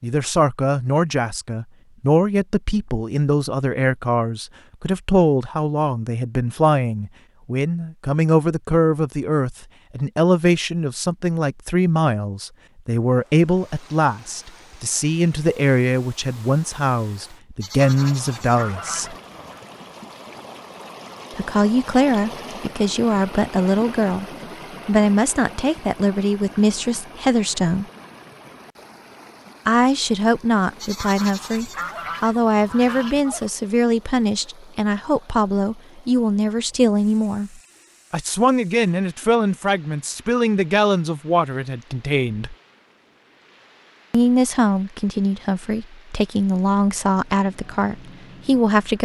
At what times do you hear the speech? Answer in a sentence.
You can hear the speech from 0.0 to 19.1 s, from 21.4 to 24.2 s, from 24.9 to 27.9 s, from 29.6 to 42.5 s and from 44.1 to 49.0 s.